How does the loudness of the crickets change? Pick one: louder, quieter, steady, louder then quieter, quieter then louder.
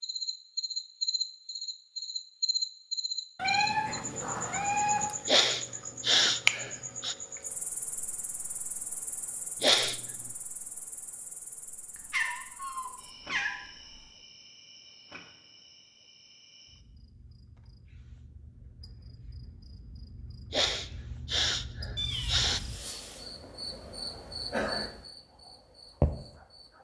quieter then louder.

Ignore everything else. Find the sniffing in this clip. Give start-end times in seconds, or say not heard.
5.2-7.2, 9.6-10.0, 20.5-22.6.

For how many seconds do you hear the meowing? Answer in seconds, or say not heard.
5 s.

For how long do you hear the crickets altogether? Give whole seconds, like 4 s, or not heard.
27 s.